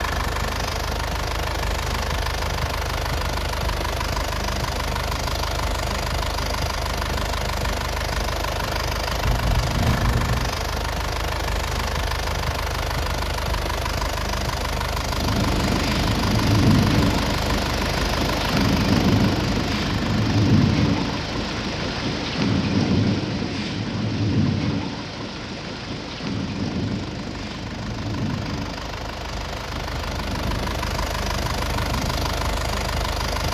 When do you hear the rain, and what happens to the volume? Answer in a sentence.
The rain can be heard from 15.1 to 33.4 s, getting quieter.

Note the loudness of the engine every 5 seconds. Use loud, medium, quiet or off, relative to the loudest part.
loud, loud, loud, loud, medium, medium, loud.